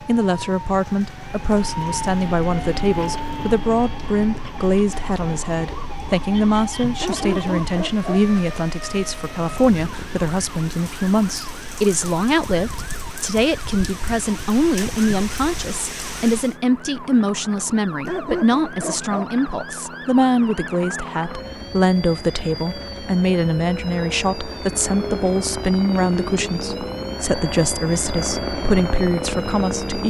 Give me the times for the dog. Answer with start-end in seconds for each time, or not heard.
7.0-8.3, 18.1-19.4.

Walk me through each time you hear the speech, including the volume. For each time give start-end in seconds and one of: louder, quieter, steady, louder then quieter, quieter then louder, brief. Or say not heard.
0.0-30.0 steady.